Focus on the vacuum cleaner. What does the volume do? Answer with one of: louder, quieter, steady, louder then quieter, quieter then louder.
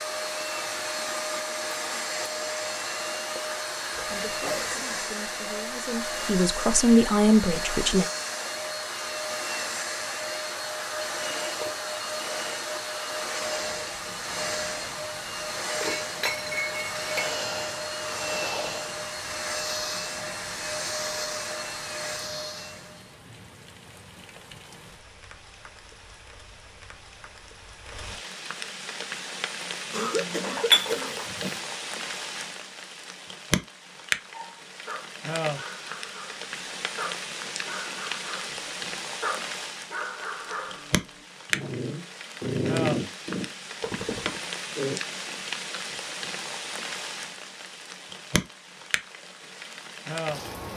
steady.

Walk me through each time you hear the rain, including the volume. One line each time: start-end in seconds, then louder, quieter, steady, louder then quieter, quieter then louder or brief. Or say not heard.
13.7-50.7 louder.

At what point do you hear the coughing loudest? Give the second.
30 s.